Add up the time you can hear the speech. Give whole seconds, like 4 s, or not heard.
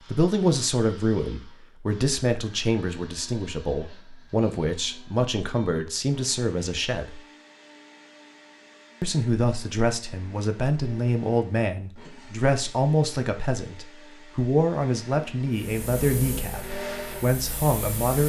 16 s.